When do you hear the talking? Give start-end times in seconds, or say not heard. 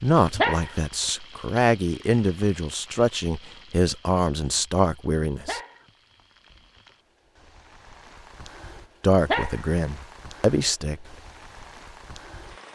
0.0-5.6, 9.0-11.1.